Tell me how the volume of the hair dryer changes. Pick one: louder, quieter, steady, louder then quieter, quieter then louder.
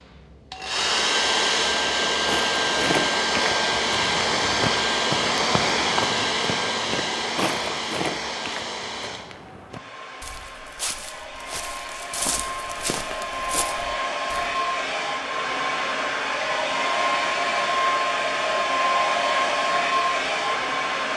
quieter then louder.